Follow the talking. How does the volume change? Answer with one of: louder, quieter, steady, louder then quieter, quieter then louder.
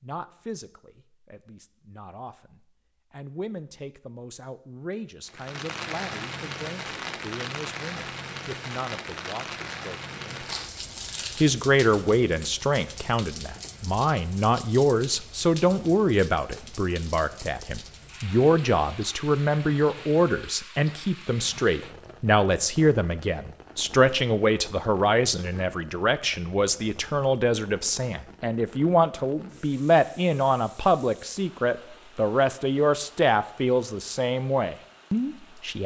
louder.